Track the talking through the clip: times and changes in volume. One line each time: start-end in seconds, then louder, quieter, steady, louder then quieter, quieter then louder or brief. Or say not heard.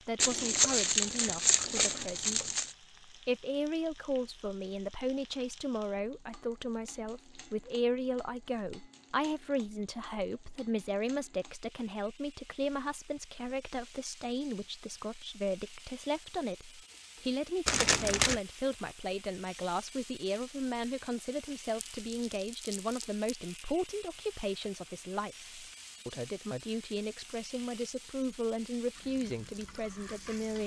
0.1-30.6 steady.